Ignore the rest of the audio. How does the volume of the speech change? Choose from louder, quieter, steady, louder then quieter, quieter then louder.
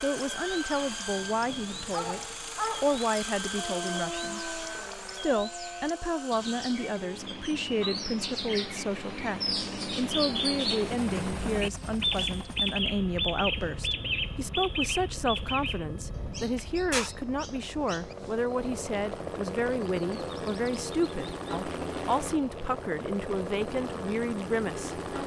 steady.